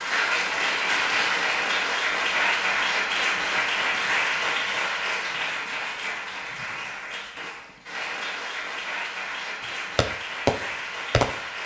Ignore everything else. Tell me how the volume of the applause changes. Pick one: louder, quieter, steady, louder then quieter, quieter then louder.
quieter.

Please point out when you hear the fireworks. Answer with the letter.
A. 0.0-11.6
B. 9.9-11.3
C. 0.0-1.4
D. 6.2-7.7
B.